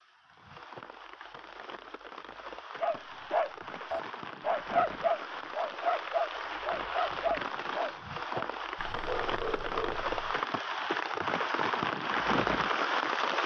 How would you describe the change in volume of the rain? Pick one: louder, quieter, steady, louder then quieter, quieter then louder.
louder.